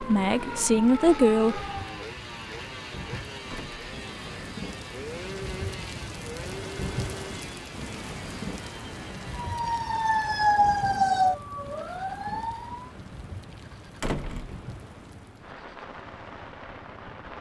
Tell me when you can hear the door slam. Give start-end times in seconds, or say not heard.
3.5-4.0, 14.0-14.6.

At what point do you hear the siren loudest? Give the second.
11 s.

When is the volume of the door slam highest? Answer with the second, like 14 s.
14 s.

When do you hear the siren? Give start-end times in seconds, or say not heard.
0.0-2.0, 9.3-12.9.